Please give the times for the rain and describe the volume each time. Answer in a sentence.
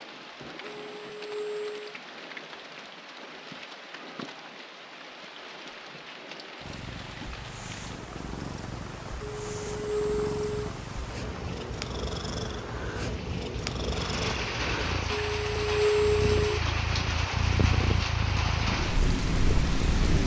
The rain can be heard from 0.0 to 20.2 s, getting louder.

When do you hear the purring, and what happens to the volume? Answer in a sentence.
The purring can be heard from 6.6 to 20.2 s, getting louder.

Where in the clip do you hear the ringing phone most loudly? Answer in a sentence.
The loudest moment of the ringing phone is at 16 seconds.